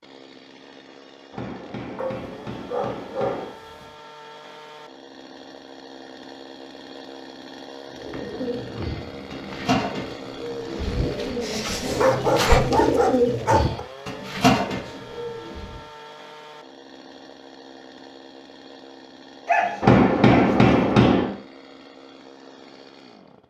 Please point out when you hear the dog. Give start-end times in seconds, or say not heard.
1.9-3.9, 11.8-13.8, 19.4-20.9.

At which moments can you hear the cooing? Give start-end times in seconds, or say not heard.
8.0-15.8.